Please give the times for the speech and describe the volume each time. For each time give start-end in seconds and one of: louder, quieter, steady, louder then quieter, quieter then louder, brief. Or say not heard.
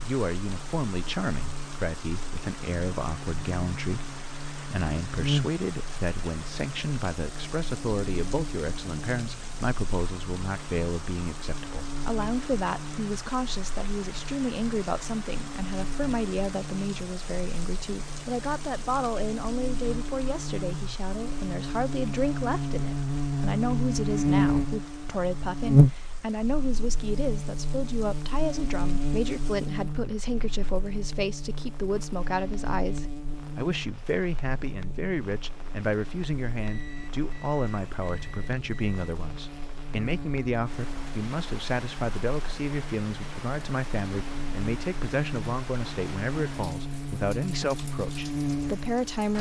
0.0-49.3 steady.